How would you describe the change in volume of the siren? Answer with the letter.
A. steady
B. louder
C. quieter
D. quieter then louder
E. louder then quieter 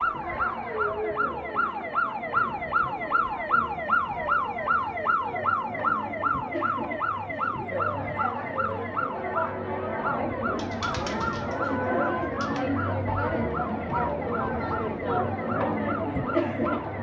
C.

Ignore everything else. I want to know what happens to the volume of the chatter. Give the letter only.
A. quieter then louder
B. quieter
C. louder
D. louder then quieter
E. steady
C.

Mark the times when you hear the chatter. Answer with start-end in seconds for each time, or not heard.
0.0-16.9.